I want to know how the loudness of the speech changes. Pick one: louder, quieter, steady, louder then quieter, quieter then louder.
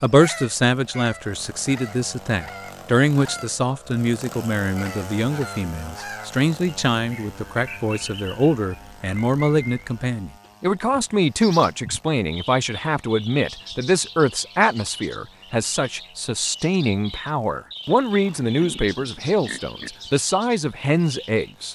steady.